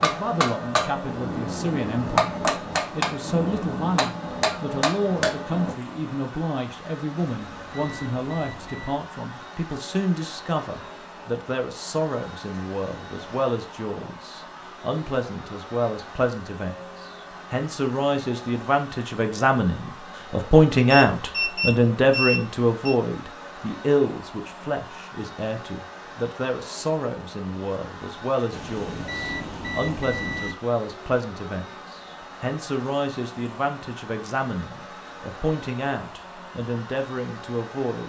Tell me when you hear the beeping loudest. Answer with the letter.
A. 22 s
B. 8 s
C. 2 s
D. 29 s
A.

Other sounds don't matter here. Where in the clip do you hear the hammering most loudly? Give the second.
2 s.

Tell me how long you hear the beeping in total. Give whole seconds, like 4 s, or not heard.
6 s.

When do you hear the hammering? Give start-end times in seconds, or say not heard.
0.0-5.8.